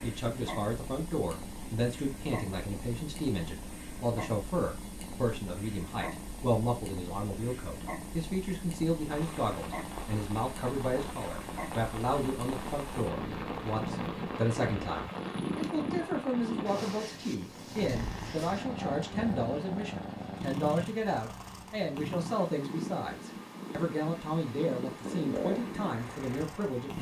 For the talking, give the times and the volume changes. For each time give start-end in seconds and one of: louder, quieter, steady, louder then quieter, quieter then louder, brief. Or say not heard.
0.0-26.9 steady.